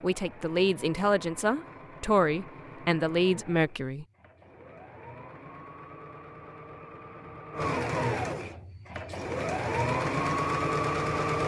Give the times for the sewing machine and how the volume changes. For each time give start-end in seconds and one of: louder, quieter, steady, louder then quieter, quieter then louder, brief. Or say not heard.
0.0-11.4 louder.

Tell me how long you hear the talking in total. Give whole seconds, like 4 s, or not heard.
4 s.